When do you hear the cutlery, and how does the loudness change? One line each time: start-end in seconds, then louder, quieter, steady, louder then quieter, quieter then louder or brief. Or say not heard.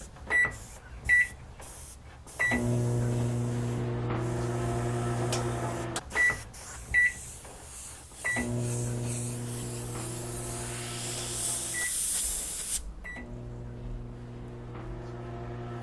not heard.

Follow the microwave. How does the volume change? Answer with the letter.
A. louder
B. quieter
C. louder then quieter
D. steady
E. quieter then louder
B.